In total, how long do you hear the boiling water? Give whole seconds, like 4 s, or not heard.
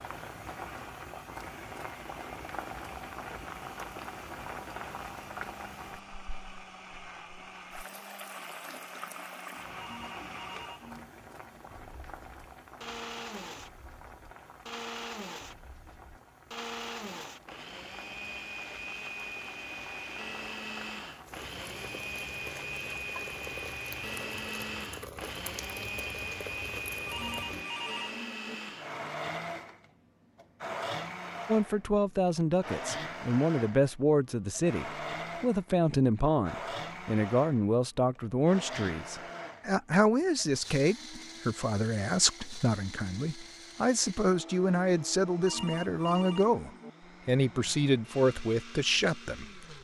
28 s.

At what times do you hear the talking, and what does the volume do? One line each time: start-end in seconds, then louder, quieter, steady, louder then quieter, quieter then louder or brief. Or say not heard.
31.4-49.7 steady.